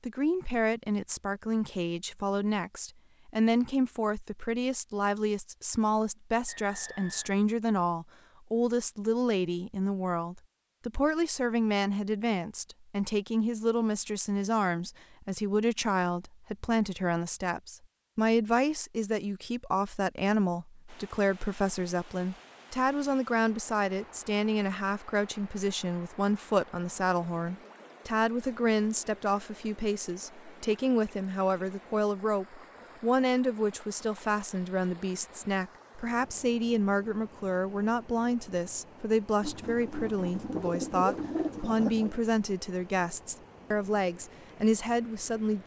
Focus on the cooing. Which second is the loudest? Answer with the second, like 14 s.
41 s.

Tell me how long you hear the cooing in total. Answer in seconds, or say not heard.
3 s.